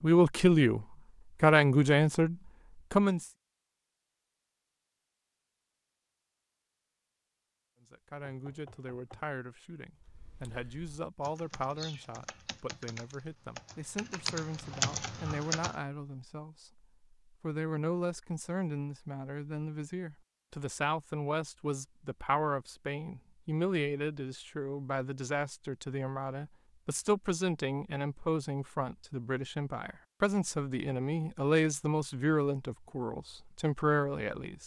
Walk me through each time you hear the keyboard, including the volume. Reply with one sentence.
You can hear the keyboard from 9.9 to 15.8 s, getting louder.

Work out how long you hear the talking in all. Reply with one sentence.
You can hear the talking for 30 seconds altogether.